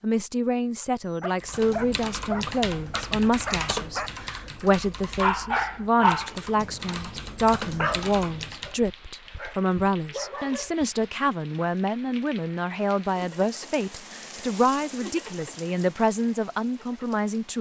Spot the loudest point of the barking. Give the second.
6 s.